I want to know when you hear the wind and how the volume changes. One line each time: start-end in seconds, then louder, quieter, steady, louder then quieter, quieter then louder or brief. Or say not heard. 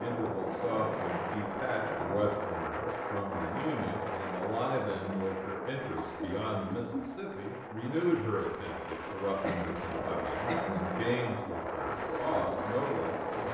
0.0-13.4 quieter then louder.